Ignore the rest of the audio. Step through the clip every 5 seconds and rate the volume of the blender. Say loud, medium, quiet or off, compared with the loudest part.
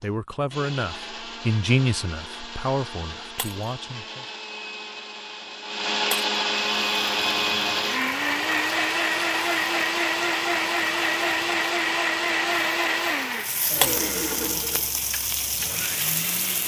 quiet, loud, loud, medium.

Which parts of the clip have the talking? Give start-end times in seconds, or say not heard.
0.0-4.2.